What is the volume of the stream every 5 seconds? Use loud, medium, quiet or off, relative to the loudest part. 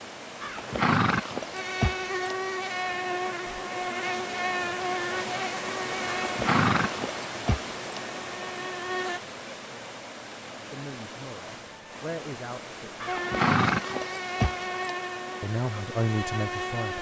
loud, loud, medium, medium.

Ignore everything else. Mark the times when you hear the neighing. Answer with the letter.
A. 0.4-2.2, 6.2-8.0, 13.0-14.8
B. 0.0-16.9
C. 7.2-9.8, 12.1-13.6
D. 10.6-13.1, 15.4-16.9
A.